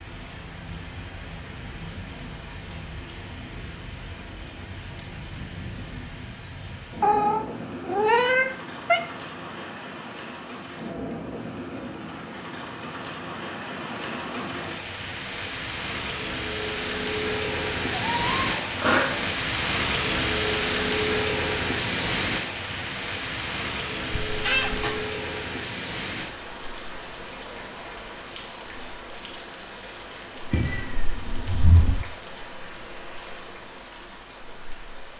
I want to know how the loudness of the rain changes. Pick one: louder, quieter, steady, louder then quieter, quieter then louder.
louder then quieter.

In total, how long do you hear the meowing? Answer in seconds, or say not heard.
5 s.